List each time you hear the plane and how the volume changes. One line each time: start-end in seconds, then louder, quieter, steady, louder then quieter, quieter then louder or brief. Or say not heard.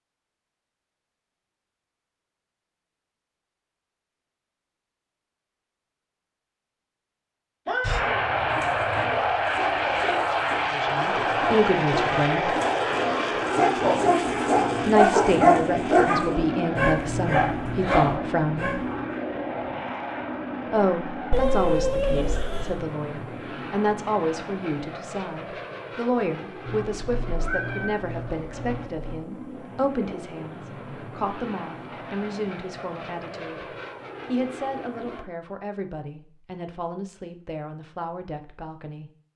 7.8-35.2 quieter.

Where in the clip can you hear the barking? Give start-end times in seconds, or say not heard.
8.5-19.1.